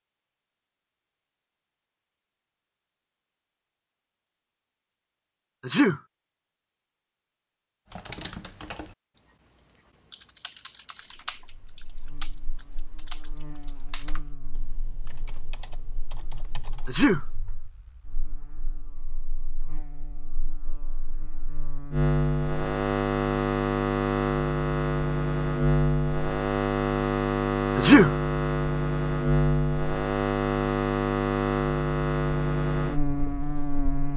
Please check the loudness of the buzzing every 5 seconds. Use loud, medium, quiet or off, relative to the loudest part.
off, off, quiet, quiet, loud, loud, loud.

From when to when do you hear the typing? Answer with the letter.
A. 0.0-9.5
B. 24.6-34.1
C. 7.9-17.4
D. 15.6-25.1
C.